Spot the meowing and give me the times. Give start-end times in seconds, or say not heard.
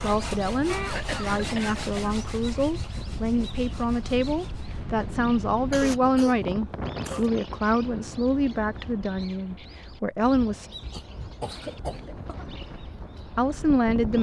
not heard.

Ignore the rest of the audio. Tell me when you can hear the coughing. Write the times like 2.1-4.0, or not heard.
0.7-2.1, 5.5-7.3, 10.9-12.4.